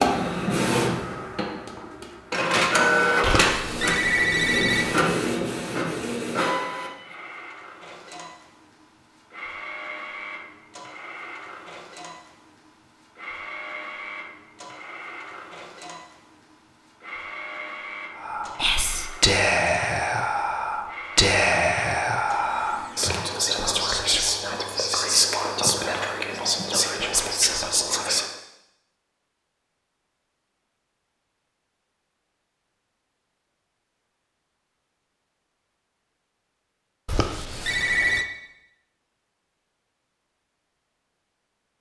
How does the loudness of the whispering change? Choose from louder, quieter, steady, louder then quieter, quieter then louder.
steady.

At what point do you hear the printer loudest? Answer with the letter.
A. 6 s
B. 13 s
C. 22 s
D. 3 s
D.